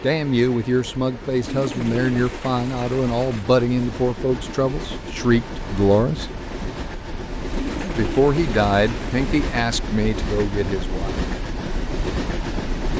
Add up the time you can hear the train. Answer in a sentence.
The train can be heard for 13 seconds in total.